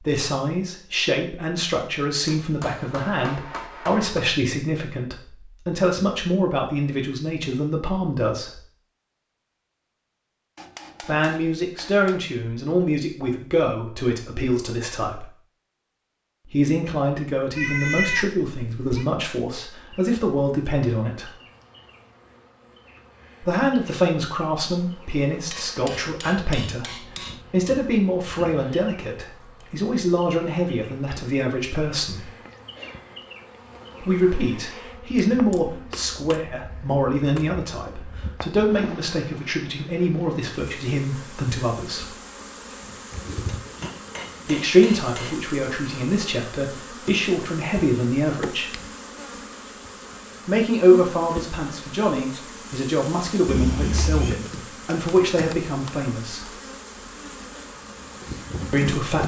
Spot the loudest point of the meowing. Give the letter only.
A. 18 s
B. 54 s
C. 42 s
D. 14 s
A.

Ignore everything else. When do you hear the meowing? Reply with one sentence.
You can hear the meowing from 17.6 to 19.1 s and from 53.5 to 54.4 s.